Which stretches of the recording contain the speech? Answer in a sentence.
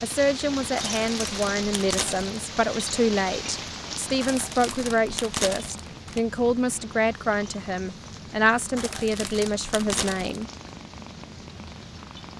You can hear the speech from 0.0 to 10.4 s.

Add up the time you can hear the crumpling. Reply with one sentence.
The crumpling can be heard for 5 seconds in total.